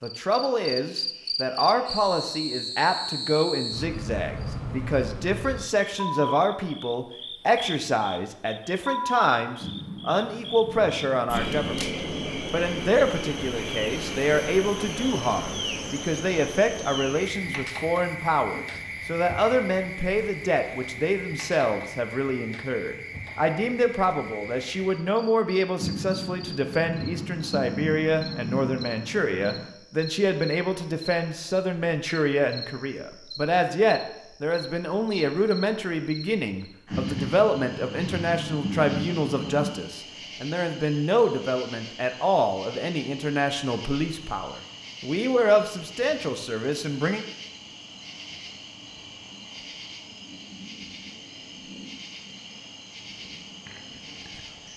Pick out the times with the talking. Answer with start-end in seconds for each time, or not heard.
0.0-11.9, 12.5-47.2.